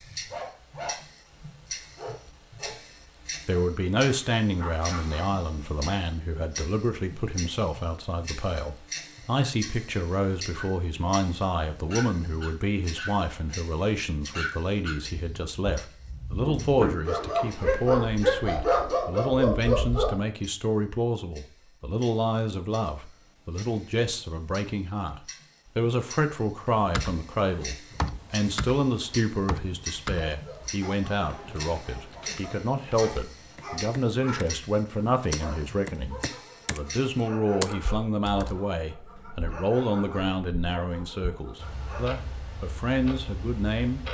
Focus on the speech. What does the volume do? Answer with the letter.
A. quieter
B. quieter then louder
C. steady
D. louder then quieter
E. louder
C.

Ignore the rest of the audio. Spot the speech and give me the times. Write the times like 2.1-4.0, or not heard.
3.5-44.0.